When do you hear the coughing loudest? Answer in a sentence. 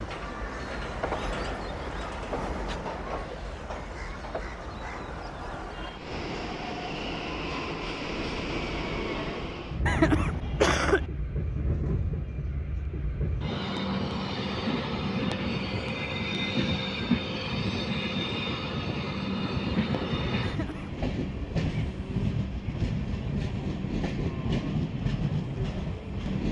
The volume of the coughing peaks at 11 seconds.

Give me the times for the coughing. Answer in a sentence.
The coughing can be heard from 9.8 to 11.1 s and from 20.4 to 21.0 s.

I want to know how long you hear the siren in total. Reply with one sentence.
You can't hear the siren here.